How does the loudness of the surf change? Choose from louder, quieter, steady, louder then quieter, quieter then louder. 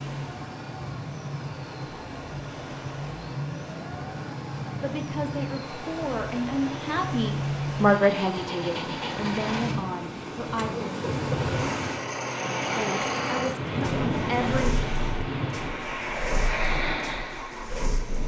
louder.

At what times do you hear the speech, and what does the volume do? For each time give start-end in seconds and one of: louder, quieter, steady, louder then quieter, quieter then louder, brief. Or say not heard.
4.8-10.7 louder then quieter
12.6-14.8 brief.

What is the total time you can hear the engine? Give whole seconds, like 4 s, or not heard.
18 s.